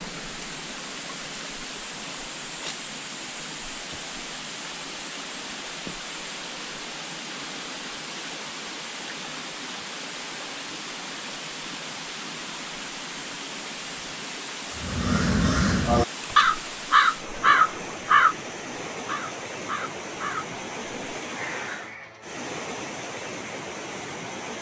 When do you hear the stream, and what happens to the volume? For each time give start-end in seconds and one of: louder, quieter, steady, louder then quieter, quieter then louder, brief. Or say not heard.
0.0-24.5 steady.